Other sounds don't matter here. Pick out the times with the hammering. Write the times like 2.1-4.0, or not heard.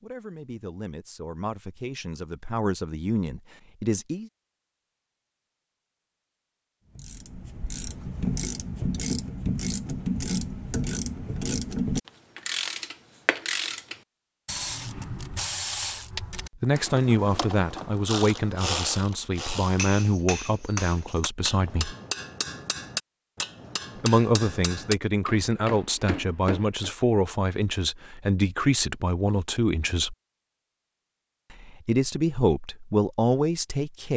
19.6-26.9.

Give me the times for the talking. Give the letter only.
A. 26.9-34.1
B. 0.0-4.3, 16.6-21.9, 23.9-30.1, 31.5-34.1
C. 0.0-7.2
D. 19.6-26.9
B.